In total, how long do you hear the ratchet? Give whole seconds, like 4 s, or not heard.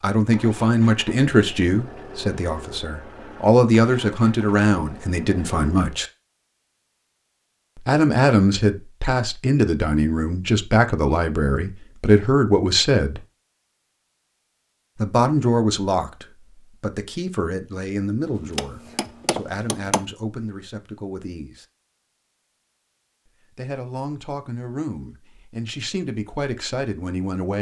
not heard.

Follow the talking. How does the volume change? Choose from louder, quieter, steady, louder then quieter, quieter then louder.
quieter.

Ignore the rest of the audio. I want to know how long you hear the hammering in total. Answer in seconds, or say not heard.
2 s.